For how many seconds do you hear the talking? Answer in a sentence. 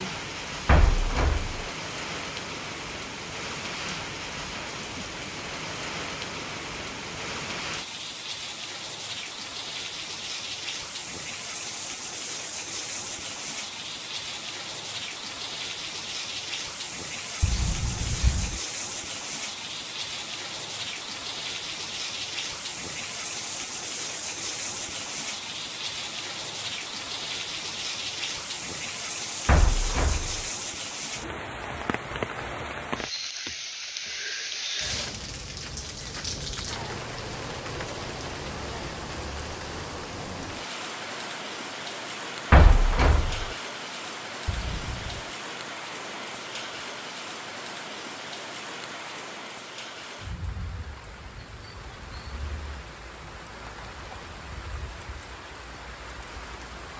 The talking can't be heard in this clip.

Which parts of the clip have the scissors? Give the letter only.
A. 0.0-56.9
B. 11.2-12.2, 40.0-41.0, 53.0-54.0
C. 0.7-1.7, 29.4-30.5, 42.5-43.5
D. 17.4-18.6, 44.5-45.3
D.